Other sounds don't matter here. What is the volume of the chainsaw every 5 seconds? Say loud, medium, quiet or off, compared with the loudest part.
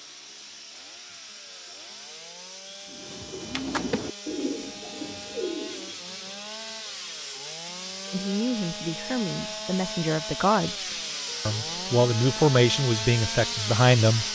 medium, medium, loud.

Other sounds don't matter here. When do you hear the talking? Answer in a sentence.
You can hear the talking from 8.1 to 14.2 s.